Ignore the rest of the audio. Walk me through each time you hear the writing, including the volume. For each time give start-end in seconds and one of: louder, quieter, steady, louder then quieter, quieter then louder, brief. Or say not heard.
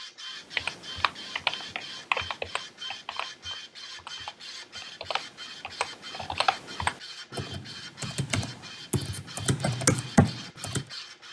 not heard.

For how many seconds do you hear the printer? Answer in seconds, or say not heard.
11 s.